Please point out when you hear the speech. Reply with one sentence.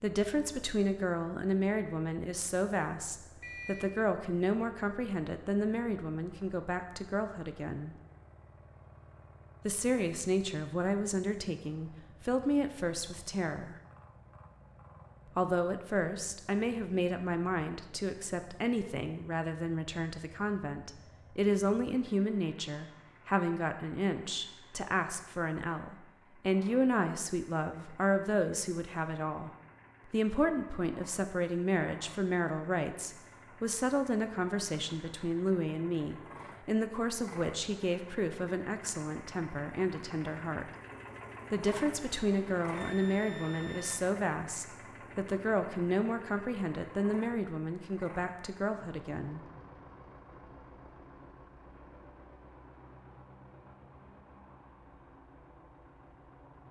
You can hear the speech from 0.0 to 8.0 s, from 9.7 to 13.8 s, from 15.3 to 40.6 s and from 41.5 to 49.4 s.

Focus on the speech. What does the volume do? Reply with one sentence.
The volume of the speech stays about the same.